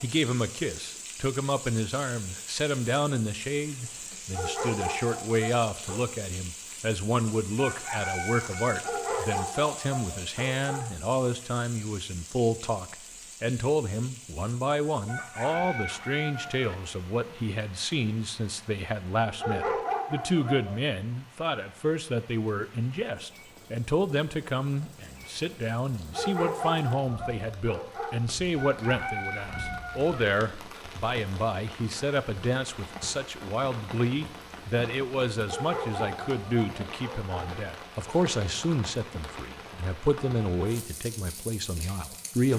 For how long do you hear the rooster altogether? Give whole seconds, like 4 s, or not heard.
5 s.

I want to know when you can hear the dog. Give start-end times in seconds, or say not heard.
4.3-6.0, 8.8-10.8, 19.4-20.8, 26.1-28.1, 35.5-37.5.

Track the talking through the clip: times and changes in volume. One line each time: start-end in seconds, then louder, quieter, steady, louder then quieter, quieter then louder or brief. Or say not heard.
0.0-42.5 steady.